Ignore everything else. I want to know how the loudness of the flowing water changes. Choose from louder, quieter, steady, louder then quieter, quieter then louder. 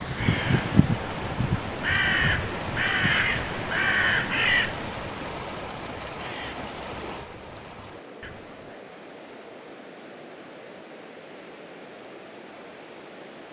quieter.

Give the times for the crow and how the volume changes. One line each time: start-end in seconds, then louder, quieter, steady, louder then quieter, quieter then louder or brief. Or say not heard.
0.0-8.7 quieter.